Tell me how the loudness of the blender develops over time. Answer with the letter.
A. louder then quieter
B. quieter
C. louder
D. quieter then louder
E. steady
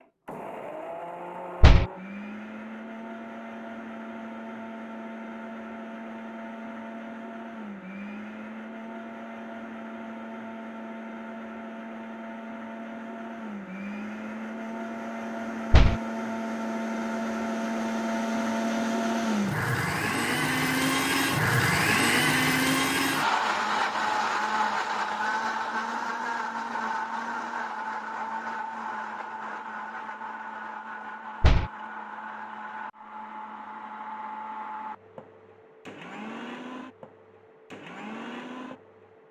A.